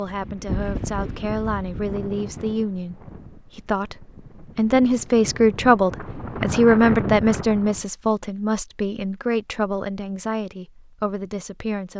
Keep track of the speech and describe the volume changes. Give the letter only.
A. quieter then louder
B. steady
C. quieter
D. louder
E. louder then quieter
E.